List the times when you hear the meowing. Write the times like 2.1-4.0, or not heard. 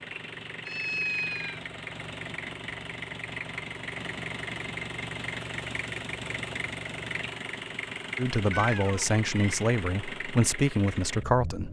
0.7-1.6, 8.5-9.6.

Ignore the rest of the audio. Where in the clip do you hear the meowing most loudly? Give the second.
1 s.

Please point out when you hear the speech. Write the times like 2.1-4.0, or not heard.
8.2-11.6.